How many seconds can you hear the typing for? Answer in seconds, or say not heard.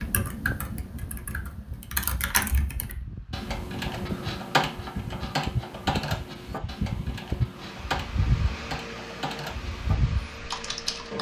11 s.